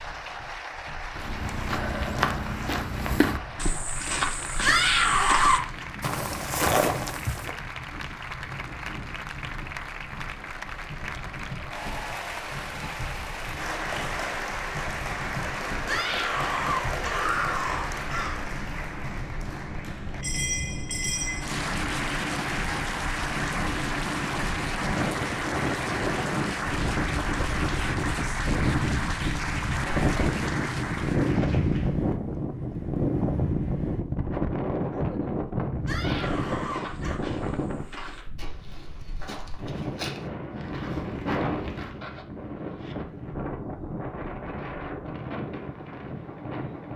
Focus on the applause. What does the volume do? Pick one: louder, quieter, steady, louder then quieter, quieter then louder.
louder.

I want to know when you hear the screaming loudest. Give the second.
5 s.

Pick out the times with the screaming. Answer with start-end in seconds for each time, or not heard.
4.6-5.8, 15.8-18.4, 35.9-37.2.